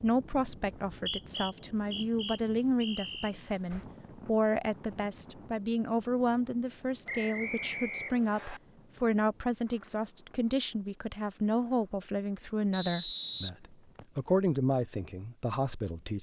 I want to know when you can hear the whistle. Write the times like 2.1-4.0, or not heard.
0.8-3.4, 7.0-8.6, 12.7-14.2.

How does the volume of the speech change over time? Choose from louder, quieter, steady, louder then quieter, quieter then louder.
steady.